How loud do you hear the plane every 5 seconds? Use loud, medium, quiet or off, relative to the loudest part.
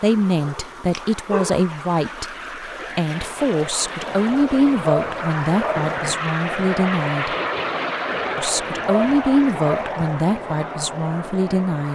medium, loud, medium.